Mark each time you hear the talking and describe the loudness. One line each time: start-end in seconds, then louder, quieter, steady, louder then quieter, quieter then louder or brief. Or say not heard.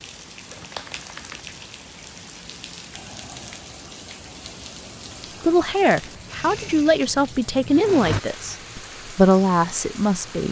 5.4-10.4 quieter then louder.